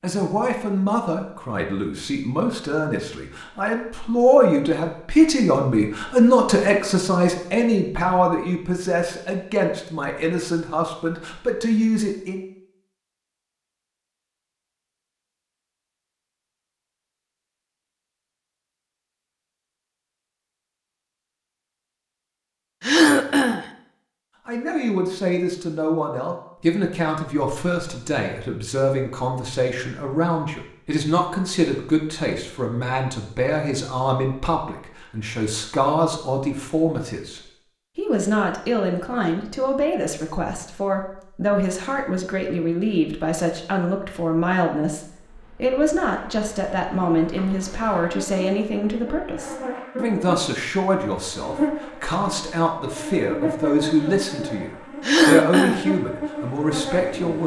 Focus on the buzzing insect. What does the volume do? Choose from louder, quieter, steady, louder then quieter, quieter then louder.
louder.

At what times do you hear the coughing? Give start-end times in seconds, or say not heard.
22.8-23.6, 55.0-55.9.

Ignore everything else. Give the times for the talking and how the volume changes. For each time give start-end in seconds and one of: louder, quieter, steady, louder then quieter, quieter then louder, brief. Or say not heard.
0.0-12.4 louder then quieter
24.4-57.4 steady.